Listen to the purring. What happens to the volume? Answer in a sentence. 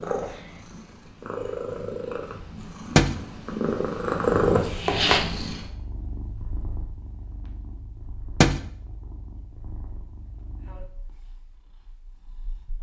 The volume of the purring goes up, then down.